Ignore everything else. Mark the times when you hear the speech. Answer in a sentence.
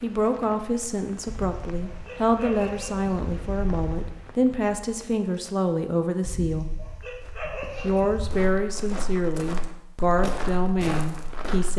You can hear the speech from 0.0 to 6.7 s and from 7.8 to 11.7 s.